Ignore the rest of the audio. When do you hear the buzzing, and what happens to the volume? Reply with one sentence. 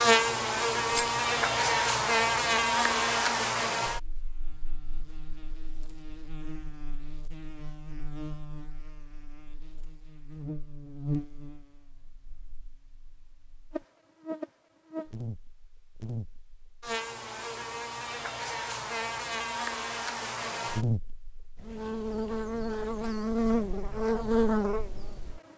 The buzzing can be heard from 0.0 to 25.4 s, getting quieter then louder.